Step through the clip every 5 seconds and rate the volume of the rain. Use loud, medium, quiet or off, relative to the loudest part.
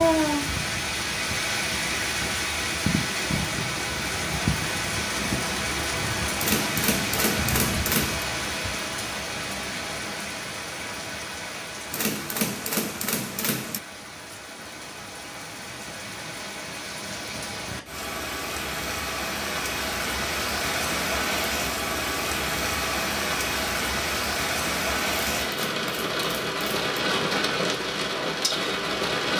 loud, loud, medium, medium, loud, loud.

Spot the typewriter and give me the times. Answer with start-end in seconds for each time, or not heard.
6.3-8.2, 11.9-13.8, 25.1-26.9.